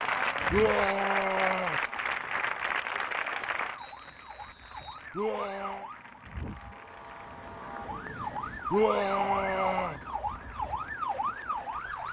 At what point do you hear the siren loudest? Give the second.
9 s.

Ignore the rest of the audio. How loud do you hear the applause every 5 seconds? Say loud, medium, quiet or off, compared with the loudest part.
loud, quiet, quiet.